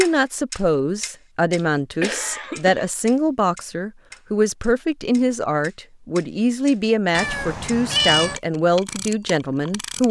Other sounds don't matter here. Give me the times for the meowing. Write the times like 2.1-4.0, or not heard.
7.1-8.4.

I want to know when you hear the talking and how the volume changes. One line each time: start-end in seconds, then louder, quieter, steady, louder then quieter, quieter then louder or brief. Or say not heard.
0.0-10.0 steady.